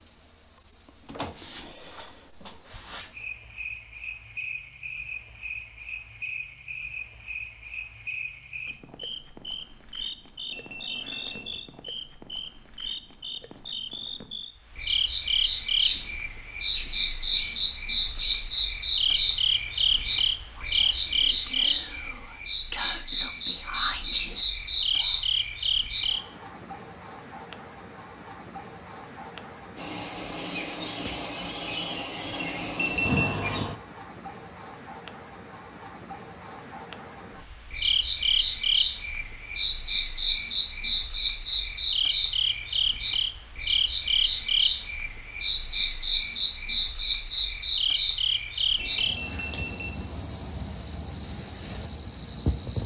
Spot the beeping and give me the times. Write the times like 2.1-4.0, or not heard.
10.5-11.7, 32.8-33.4, 48.8-49.9.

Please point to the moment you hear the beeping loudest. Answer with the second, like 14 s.
33 s.